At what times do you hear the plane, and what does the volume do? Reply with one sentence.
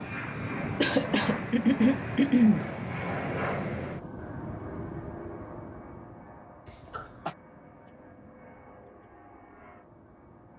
The plane can be heard from 0.0 to 10.5 s, getting quieter.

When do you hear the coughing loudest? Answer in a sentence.
The loudest moment of the coughing is at 2 seconds.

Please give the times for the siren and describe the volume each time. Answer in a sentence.
The siren can't be heard in this clip.